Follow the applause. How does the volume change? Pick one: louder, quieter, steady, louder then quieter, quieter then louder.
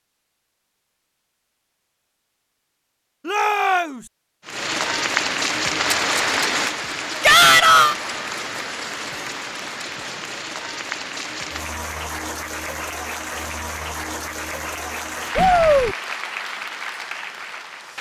quieter.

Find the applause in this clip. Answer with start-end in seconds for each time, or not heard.
4.5-17.9.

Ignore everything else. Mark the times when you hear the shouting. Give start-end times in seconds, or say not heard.
3.2-4.0, 7.2-8.0, 15.3-15.9.